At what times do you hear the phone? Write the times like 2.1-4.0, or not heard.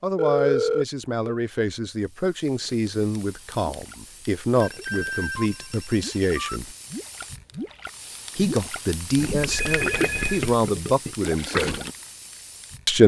0.1-1.4, 4.6-6.6, 9.3-10.6.